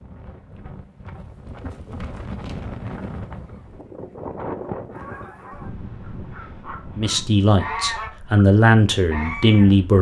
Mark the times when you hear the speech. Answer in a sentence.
You can hear the speech from 7.0 to 9.9 s.